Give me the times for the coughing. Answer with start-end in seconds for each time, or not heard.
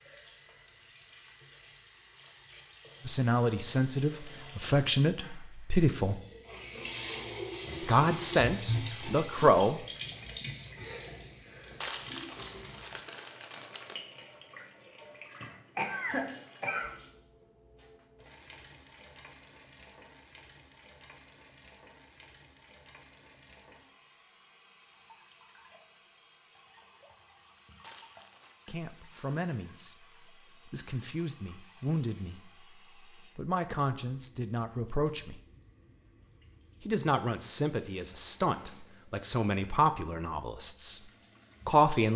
15.3-16.9.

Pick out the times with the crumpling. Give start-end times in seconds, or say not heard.
11.8-14.0, 27.8-28.6.